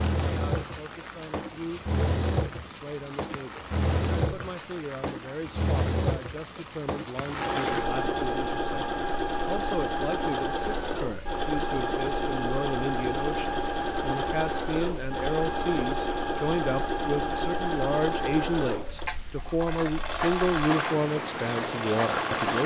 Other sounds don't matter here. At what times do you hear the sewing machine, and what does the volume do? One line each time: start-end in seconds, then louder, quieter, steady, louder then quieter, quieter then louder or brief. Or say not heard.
0.0-22.6 steady.